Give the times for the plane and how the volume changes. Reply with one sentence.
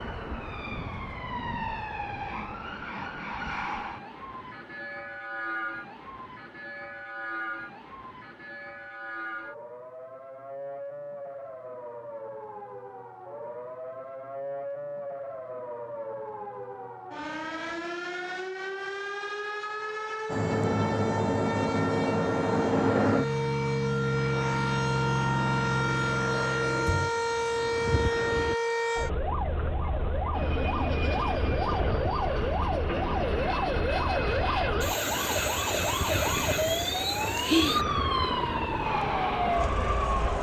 You can hear the plane from 20.3 to 28.6 s, getting quieter; and from 30.3 to 40.3 s, at a steady volume.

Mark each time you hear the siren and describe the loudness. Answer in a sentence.
You can hear the siren from 0.0 to 40.3 s, getting louder.